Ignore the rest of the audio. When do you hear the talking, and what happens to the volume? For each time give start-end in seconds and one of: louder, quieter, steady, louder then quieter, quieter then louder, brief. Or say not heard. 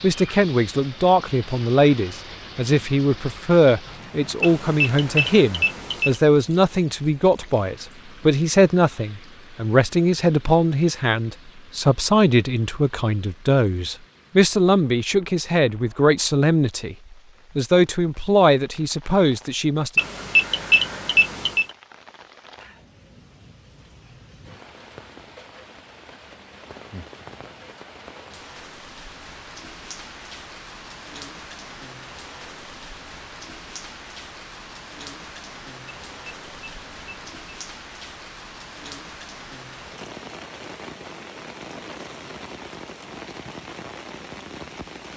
0.0-16.9 steady
17.6-19.9 brief.